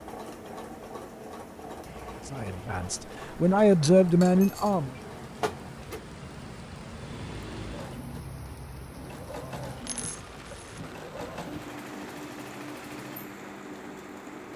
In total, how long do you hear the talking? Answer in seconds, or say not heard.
3 s.